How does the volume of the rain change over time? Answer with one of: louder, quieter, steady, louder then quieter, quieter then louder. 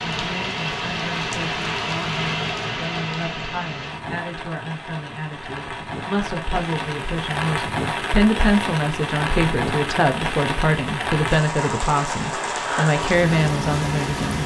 quieter then louder.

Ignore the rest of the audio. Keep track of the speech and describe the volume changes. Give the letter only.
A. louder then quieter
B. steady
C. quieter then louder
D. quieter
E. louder
E.